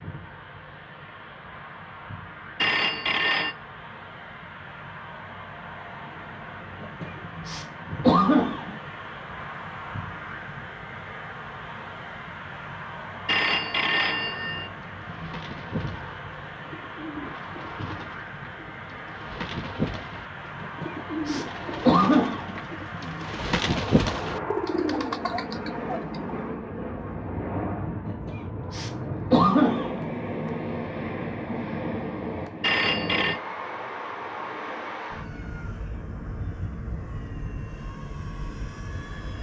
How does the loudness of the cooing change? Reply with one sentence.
The loudness of the cooing goes up.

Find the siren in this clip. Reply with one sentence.
You can't hear the siren here.